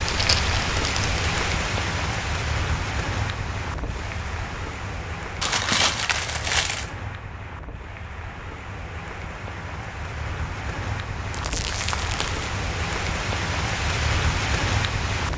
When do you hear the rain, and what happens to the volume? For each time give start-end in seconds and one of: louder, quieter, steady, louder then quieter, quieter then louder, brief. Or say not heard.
0.0-15.3 quieter then louder.